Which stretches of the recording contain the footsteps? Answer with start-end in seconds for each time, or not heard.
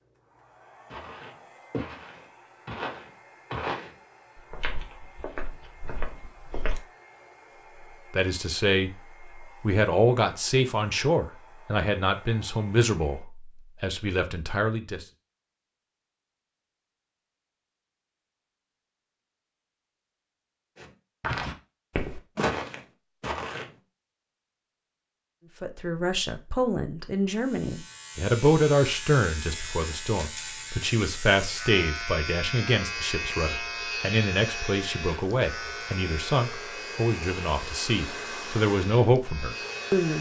0.9-6.8, 20.8-23.7.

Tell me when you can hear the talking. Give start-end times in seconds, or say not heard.
8.1-15.1, 25.6-40.1.